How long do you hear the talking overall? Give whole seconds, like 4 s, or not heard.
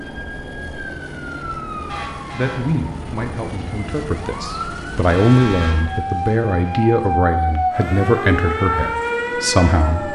8 s.